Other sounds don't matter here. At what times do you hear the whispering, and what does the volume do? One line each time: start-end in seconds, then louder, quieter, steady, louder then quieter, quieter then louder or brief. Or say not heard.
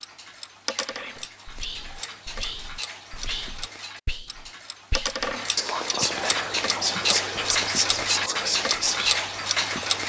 0.8-10.0 louder.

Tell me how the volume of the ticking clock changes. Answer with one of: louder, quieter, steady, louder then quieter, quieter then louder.
louder.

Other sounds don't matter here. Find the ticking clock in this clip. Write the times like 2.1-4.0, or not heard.
0.0-10.0.